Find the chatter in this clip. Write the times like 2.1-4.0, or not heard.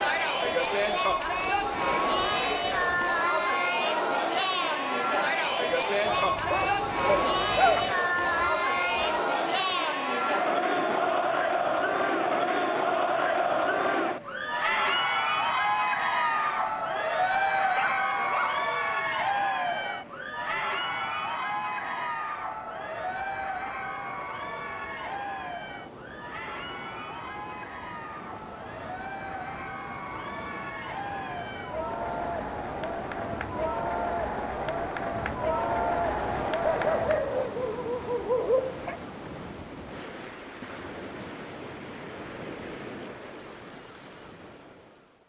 0.0-37.4.